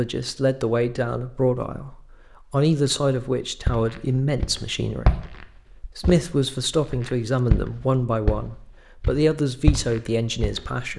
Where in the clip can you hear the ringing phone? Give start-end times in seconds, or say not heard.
not heard.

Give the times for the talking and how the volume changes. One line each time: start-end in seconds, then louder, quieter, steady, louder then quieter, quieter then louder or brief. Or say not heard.
0.0-10.9 steady.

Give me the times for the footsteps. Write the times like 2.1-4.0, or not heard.
3.6-6.2, 6.9-10.7.